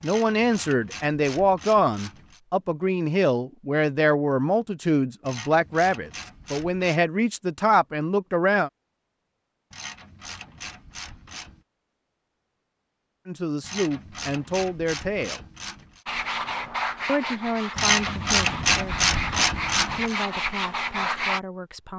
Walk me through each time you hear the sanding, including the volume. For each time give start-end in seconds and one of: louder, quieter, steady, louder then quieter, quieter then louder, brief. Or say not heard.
16.1-21.4 quieter then louder.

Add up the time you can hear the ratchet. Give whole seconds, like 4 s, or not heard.
11 s.